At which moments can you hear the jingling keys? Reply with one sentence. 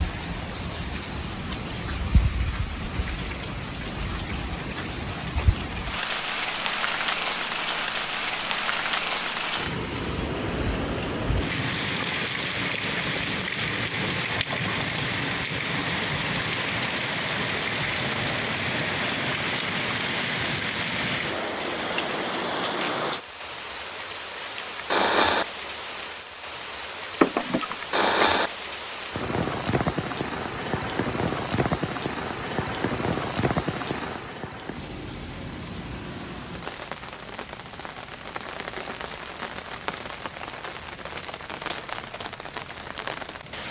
You can hear the jingling keys from 27.2 to 28.4 s.